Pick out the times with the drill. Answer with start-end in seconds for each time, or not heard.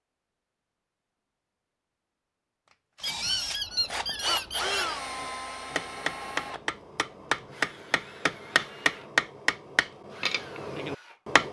2.7-9.2, 10.1-11.4.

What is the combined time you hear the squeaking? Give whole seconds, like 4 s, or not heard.
2 s.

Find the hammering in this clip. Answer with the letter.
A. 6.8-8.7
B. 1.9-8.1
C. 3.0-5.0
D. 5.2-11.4
D.